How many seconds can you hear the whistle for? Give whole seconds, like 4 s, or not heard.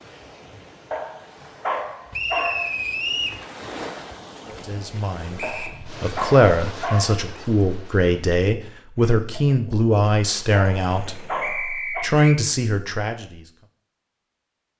3 s.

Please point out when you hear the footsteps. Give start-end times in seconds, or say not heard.
not heard.